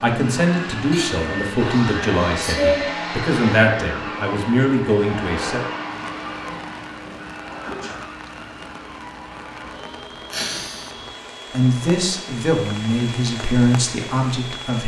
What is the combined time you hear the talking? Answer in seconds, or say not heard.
9 s.